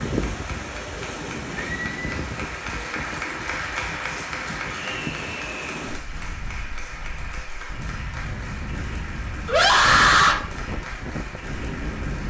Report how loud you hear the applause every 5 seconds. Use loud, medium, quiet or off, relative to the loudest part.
loud, medium, medium.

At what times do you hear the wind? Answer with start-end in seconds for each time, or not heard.
0.0-12.2.